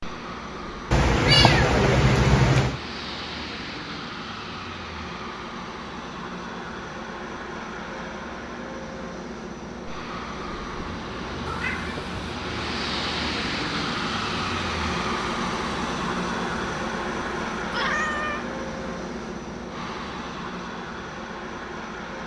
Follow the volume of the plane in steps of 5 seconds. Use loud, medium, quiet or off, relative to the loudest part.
medium, medium, loud, loud, medium.